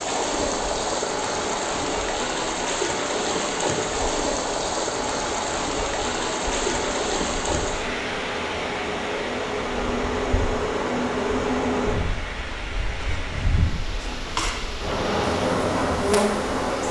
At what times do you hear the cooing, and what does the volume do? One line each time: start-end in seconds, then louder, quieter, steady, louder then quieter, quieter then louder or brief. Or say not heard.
not heard.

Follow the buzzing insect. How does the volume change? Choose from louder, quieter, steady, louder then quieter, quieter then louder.
louder.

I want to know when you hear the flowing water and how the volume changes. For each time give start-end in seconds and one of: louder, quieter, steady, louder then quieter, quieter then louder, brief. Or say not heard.
0.0-16.8 quieter.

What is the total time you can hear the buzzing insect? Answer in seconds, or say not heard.
17 s.